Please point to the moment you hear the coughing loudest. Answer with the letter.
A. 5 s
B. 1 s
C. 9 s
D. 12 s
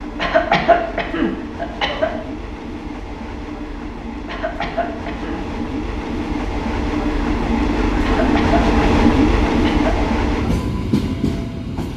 B.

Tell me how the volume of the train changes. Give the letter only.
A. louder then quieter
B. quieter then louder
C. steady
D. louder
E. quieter
D.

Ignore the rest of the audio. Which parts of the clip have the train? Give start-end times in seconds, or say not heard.
0.0-11.9.